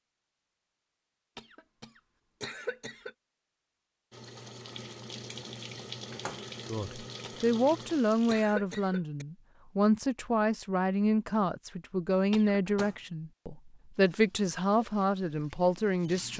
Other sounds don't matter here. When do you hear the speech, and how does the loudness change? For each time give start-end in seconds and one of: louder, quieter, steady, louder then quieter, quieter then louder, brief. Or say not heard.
6.7-16.3 steady.